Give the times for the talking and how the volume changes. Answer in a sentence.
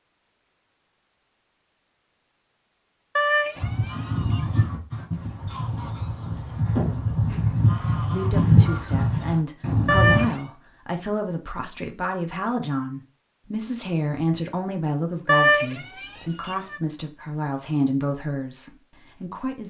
You can hear the talking from 8.1 to 19.6 s, at a steady volume.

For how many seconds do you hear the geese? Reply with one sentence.
You can hear the geese for 7 seconds altogether.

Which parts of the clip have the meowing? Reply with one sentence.
You can hear the meowing from 3.1 to 4.7 s, from 9.8 to 10.4 s and from 15.2 to 16.8 s.